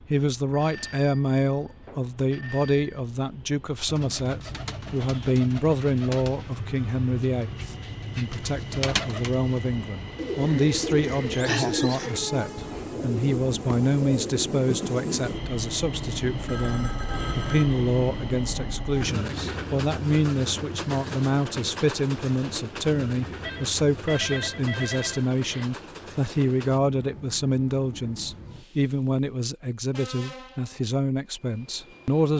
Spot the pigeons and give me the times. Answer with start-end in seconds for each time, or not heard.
3.9-14.5.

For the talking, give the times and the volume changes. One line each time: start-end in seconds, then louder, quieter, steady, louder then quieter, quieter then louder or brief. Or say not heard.
0.1-32.3 steady.